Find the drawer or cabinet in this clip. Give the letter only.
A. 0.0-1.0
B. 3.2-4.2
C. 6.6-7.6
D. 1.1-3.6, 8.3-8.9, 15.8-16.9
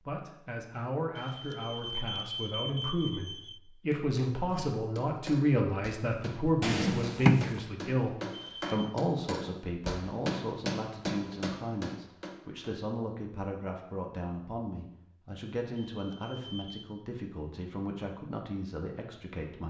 C.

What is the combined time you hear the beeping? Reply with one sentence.
You can hear the beeping for 4 seconds altogether.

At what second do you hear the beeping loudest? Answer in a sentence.
The loudest moment of the beeping is at 3 seconds.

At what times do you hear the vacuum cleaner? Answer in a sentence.
You can't hear the vacuum cleaner here.